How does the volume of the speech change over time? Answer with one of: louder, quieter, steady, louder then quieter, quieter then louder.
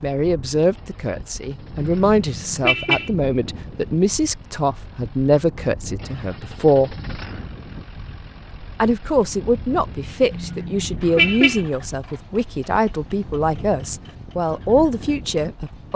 steady.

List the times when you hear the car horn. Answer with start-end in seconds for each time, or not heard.
1.8-3.1, 10.3-11.6.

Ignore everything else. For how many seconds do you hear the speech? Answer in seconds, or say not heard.
14 s.